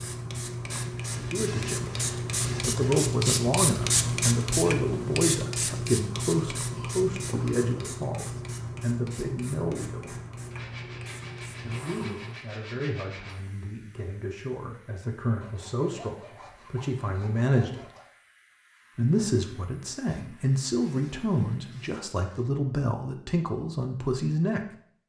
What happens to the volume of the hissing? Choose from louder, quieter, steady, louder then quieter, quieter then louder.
quieter.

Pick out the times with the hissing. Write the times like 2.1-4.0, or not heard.
0.0-21.8.